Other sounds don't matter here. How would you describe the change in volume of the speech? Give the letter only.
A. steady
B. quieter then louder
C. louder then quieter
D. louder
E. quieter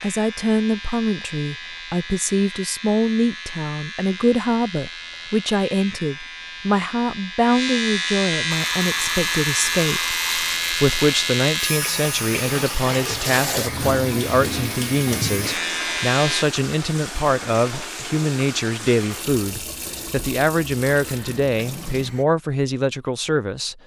A.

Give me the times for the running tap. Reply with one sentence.
The running tap can be heard from 8.5 to 22.2 s.